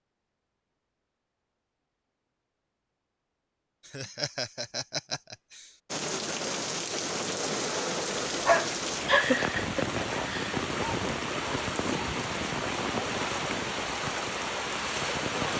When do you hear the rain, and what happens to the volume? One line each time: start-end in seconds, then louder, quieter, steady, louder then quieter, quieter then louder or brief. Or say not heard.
5.9-15.5 steady.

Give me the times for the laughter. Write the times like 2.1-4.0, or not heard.
3.9-5.7, 9.1-10.6.